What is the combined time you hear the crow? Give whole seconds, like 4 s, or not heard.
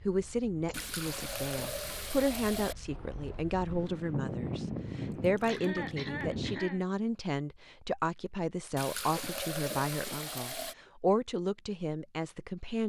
not heard.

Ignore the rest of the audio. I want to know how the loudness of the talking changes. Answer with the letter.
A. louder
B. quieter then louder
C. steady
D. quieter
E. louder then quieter
C.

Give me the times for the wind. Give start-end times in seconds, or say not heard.
0.0-6.6.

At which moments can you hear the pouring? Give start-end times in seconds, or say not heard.
0.7-2.8, 5.2-6.0, 8.8-10.8.